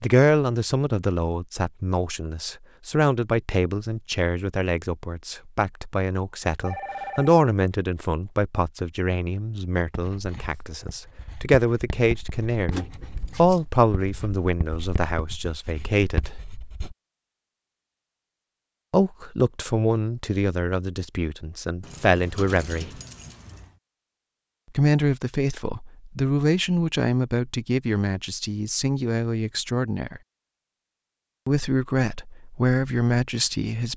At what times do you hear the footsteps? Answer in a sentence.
The footsteps can't be heard in this clip.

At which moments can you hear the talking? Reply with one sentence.
You can hear the talking from 0.0 to 16.4 s, from 18.9 to 22.9 s, from 24.8 to 30.2 s and from 31.4 to 33.9 s.